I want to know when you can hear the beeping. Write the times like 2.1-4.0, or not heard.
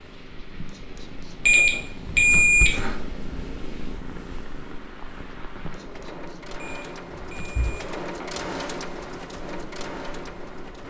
1.4-3.0, 6.5-8.3.